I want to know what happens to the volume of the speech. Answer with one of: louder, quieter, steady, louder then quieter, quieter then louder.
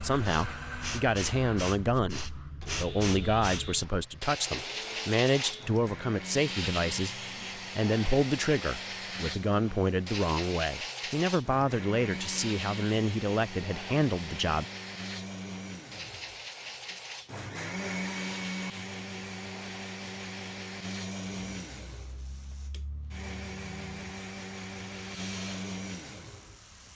steady.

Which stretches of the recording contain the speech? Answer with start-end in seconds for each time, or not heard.
0.0-14.7.